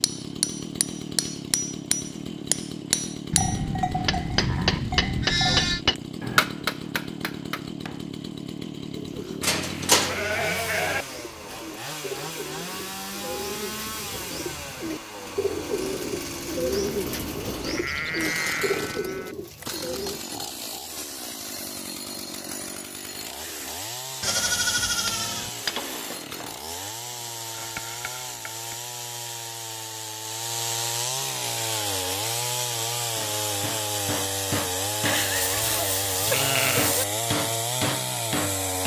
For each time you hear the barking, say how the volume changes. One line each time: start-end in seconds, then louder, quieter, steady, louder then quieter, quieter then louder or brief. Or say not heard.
not heard.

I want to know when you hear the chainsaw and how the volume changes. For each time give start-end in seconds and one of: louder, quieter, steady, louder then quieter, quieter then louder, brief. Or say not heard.
0.0-38.8 louder.